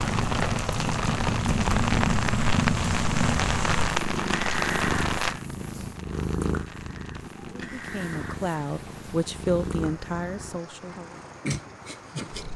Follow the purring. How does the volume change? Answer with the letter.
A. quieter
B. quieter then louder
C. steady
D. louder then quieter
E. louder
A.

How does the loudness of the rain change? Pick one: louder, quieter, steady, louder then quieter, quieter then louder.
quieter.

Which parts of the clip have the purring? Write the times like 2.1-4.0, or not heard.
0.0-12.5.